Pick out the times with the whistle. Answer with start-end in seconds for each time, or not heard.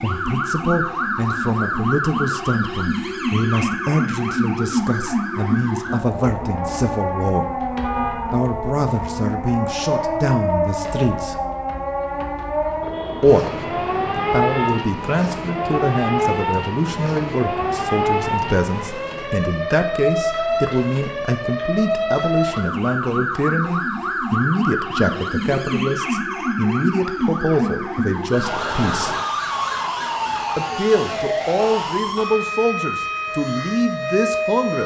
not heard.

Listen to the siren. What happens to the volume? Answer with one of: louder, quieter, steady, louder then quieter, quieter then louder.
steady.